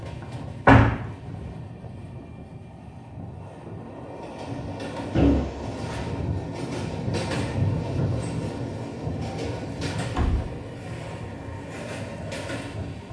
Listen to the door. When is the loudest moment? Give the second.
1 s.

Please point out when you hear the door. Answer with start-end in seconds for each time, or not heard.
0.7-1.4, 5.2-6.1, 10.2-11.1.